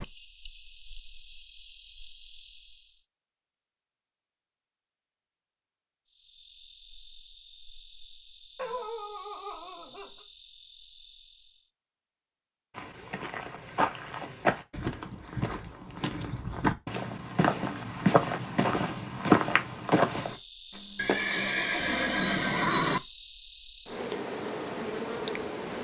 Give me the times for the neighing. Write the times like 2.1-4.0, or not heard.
20.9-23.0.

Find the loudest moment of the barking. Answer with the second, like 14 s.
9 s.